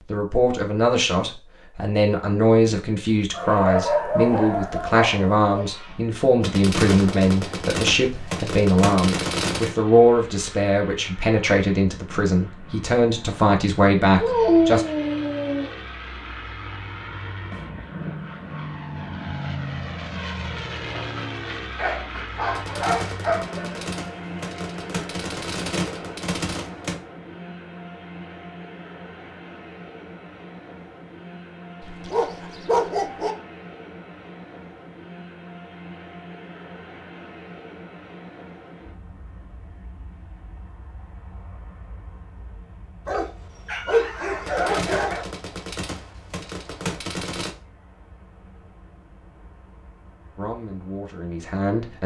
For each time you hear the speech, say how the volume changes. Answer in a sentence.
The speech can be heard from 0.1 to 14.8 s, at a steady volume; and briefly from 50.4 to 52.0 s.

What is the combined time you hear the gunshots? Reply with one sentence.
The gunshots can be heard for 11 seconds in total.